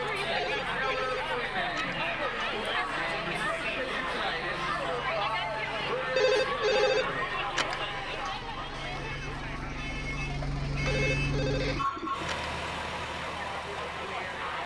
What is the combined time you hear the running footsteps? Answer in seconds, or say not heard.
not heard.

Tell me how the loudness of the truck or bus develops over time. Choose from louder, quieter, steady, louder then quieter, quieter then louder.
louder.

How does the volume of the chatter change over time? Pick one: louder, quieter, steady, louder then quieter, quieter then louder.
quieter.